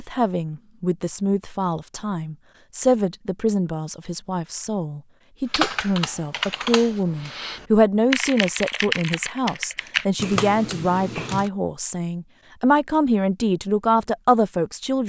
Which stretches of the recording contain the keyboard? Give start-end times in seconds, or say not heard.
5.5-11.5.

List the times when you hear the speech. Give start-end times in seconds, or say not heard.
0.0-15.0.